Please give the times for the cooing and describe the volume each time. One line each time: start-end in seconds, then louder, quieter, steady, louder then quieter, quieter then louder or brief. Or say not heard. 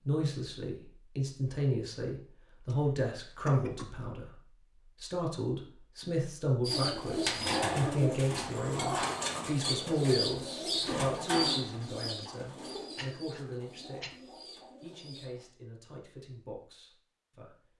6.6-15.5 quieter.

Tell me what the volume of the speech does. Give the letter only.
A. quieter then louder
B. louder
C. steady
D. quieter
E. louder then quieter
D.